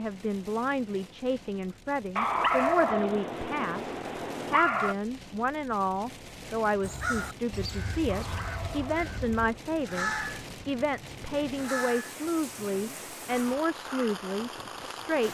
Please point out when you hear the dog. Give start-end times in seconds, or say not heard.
2.1-5.0, 8.1-9.8.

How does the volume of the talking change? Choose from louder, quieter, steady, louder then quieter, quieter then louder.
steady.